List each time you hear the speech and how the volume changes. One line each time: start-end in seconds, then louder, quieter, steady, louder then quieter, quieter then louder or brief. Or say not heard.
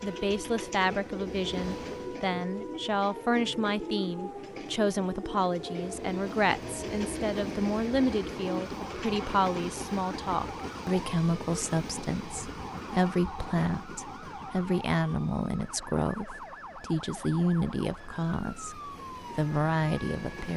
0.0-20.5 steady.